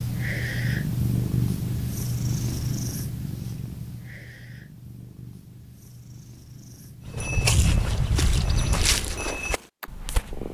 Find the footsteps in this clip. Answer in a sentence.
The footsteps can be heard from 7.0 to 10.4 s.